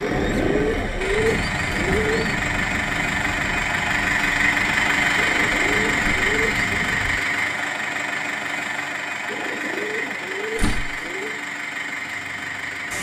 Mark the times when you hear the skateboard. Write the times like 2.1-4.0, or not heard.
not heard.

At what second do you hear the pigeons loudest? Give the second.
1 s.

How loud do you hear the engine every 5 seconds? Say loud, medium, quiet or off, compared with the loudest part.
loud, loud, medium.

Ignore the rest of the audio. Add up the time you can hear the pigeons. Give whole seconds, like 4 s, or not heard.
6 s.